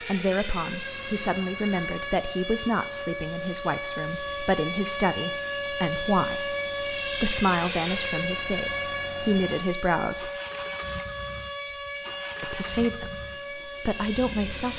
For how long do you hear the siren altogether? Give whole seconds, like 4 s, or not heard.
15 s.